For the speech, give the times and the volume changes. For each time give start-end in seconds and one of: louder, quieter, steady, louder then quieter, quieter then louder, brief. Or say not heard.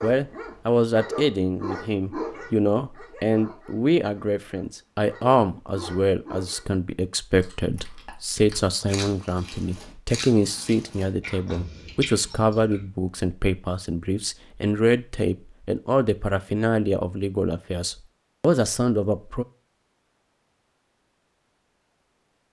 0.0-19.4 steady.